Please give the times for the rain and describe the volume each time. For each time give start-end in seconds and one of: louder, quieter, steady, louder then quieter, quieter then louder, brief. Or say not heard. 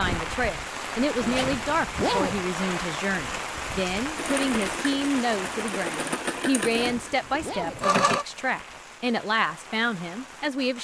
0.0-10.7 quieter.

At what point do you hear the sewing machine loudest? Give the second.
8 s.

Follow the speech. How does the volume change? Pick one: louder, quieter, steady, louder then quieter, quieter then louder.
steady.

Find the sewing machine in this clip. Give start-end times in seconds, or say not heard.
4.2-8.2.